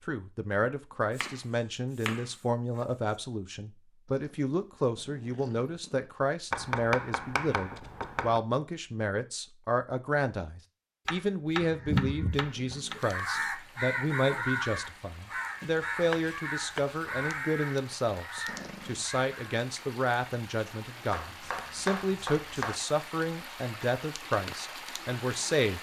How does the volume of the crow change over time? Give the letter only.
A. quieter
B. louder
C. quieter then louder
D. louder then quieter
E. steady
A.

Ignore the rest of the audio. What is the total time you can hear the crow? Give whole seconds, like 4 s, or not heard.
8 s.